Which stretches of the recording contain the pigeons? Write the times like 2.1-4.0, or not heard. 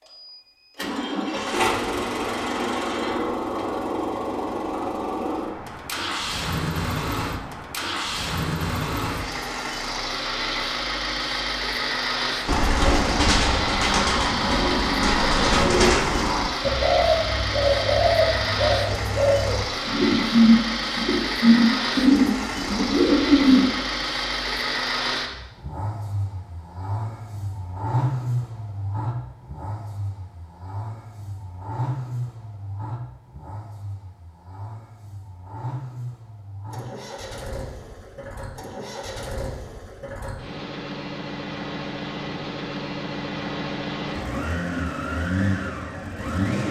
12.4-23.7.